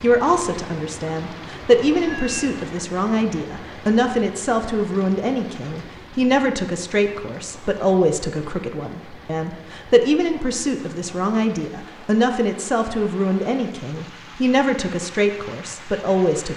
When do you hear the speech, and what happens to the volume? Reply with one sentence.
The speech can be heard from 0.0 to 16.5 s, at a steady volume.